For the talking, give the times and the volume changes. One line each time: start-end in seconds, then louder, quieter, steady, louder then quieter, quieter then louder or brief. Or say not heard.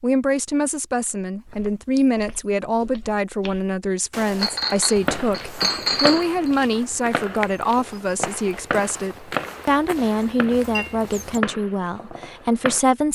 0.0-13.0 steady.